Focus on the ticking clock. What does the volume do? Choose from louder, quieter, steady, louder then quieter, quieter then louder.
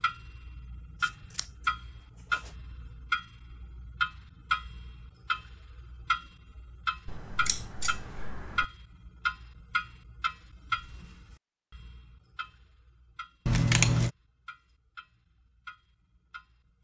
quieter.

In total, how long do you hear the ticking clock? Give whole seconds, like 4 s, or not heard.
17 s.